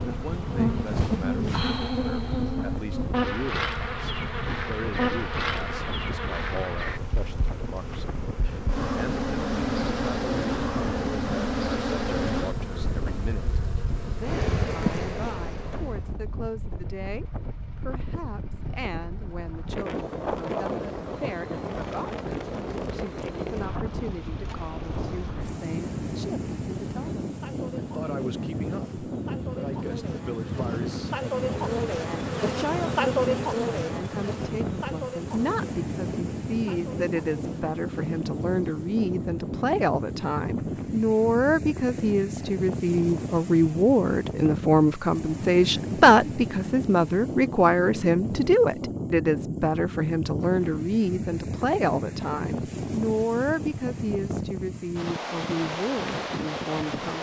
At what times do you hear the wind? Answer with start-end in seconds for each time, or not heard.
0.0-57.1.